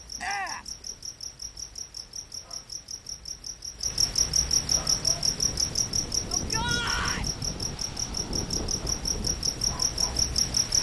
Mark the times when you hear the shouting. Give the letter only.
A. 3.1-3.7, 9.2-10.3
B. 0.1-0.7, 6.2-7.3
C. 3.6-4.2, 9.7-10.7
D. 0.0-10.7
B.